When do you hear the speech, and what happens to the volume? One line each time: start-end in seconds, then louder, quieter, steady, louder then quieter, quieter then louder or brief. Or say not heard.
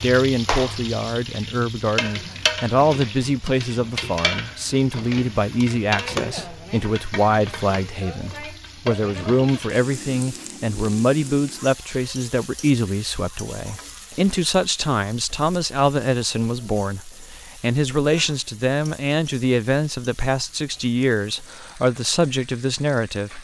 0.0-23.3 steady.